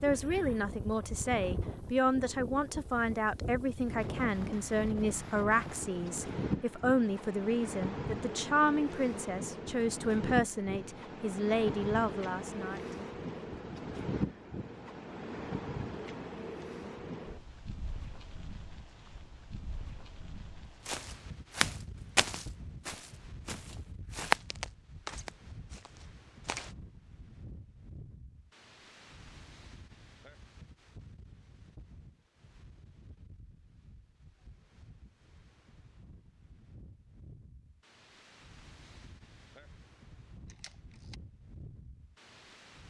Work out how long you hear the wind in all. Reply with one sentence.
The wind can be heard for 43 seconds in total.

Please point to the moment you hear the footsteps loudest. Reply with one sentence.
The volume of the footsteps peaks at 24 seconds.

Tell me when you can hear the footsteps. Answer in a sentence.
You can hear the footsteps from 20.9 to 26.8 s.